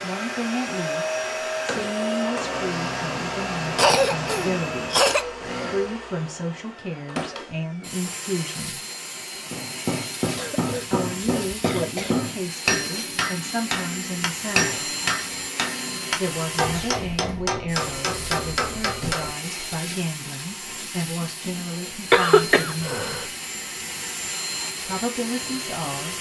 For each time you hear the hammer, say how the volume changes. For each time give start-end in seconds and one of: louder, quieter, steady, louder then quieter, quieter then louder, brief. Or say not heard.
9.5-19.3 steady.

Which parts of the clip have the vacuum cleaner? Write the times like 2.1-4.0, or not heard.
0.0-26.1.